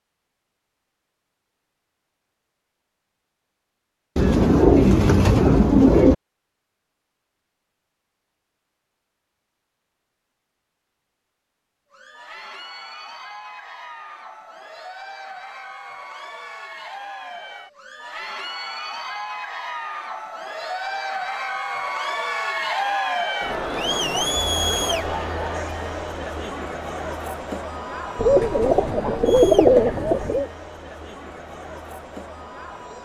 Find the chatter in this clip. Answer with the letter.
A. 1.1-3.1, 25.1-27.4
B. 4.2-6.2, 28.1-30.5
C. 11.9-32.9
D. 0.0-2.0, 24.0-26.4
C.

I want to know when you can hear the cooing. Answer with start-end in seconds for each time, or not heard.
4.2-6.2, 28.1-30.5.